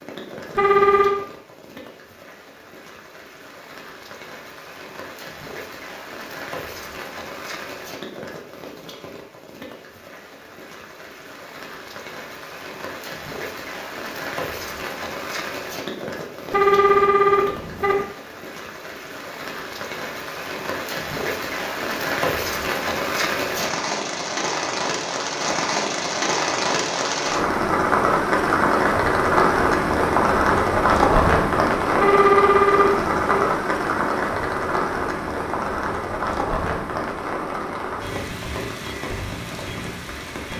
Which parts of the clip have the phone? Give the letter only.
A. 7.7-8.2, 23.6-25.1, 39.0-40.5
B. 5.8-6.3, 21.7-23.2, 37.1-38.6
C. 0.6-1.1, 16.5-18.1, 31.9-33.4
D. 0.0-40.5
C.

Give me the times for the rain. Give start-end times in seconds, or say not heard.
0.0-40.5.